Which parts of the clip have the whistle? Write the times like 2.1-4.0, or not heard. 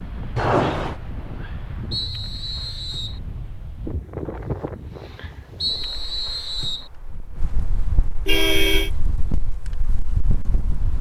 1.9-3.2, 5.6-6.9.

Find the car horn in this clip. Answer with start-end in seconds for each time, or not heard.
0.3-0.9, 8.2-8.9.